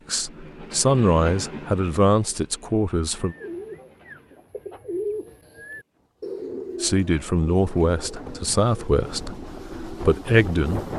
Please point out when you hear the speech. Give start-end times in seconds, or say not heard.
0.1-3.4, 6.8-10.9.